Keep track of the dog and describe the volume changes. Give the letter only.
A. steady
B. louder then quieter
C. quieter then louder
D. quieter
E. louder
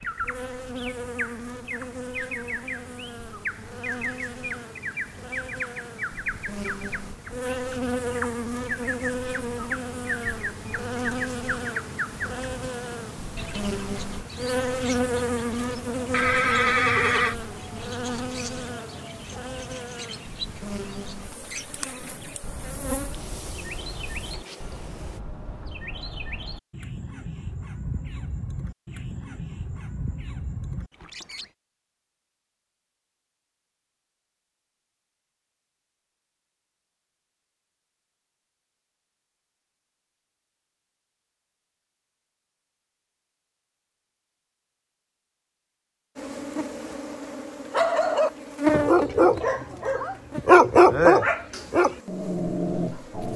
B.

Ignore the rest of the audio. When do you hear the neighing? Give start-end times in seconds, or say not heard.
16.1-17.4.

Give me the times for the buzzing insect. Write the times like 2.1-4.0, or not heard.
0.0-25.2, 46.1-53.3.